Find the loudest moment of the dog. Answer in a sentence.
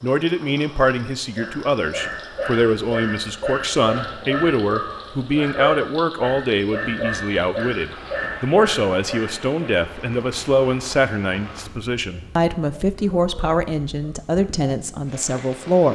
The volume of the dog peaks at 6 seconds.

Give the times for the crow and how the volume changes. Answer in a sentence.
The crow can't be heard in this clip.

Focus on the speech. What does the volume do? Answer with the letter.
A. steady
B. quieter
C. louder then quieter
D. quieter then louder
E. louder
A.